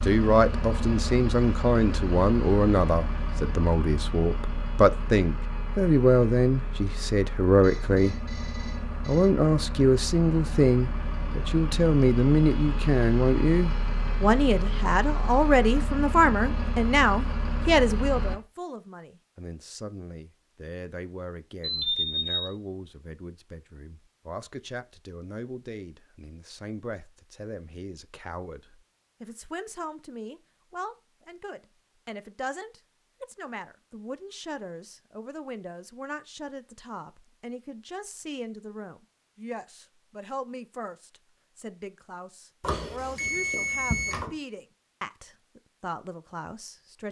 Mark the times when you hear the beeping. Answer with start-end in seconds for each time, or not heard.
7.5-9.3, 21.6-22.5, 42.6-44.3.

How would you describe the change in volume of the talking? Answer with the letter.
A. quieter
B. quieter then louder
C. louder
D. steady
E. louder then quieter
A.